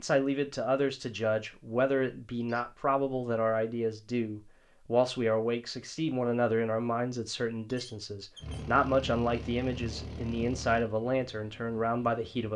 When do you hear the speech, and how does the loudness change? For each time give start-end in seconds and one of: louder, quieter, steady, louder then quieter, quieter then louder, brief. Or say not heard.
0.0-12.5 steady.